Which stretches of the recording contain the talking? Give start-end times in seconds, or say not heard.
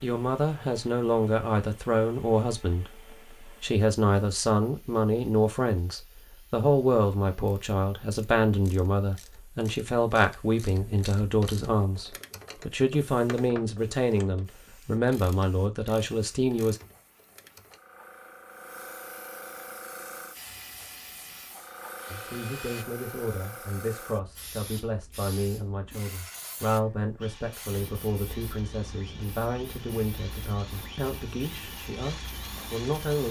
0.0-16.8, 22.1-33.2.